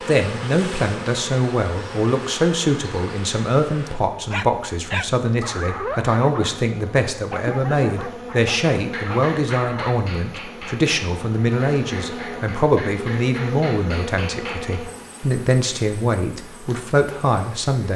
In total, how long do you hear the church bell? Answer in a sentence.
The church bell can't be heard in this clip.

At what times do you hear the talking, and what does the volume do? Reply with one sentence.
You can hear the talking from 0.0 to 17.9 s, at a steady volume.